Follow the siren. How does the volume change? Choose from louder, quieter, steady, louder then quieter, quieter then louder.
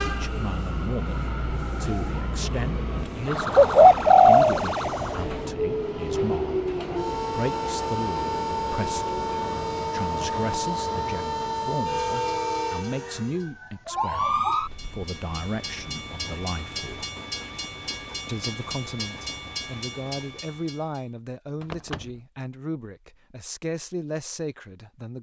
louder.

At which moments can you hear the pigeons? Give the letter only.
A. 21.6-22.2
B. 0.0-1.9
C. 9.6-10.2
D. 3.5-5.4
D.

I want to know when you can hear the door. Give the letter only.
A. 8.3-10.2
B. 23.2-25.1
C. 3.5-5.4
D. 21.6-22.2
D.